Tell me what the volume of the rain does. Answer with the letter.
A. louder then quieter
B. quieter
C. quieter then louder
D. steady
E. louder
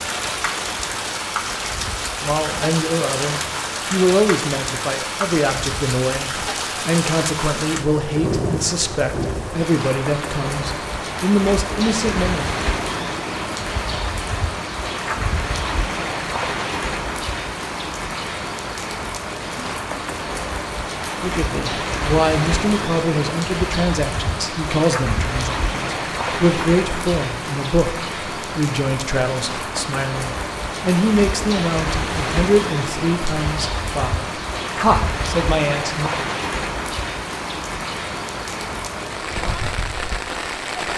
D.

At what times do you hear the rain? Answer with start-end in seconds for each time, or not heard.
0.0-40.9.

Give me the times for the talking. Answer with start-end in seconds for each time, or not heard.
2.2-12.6, 21.2-36.1.